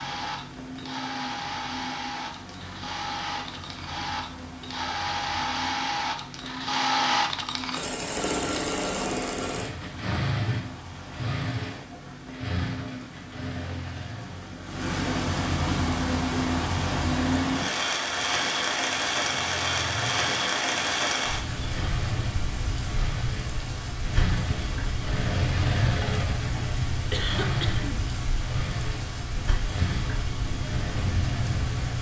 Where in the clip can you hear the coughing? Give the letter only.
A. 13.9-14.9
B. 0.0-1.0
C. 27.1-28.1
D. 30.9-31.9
C.